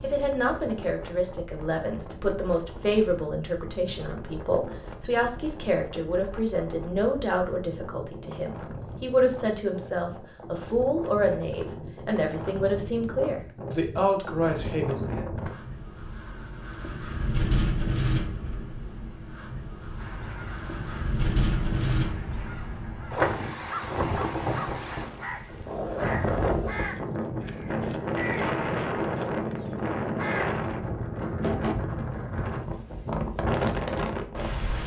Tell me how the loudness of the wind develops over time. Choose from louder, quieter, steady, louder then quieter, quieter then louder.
louder.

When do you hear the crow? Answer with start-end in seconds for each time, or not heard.
19.9-30.8.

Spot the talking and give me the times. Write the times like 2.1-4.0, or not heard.
0.0-15.0.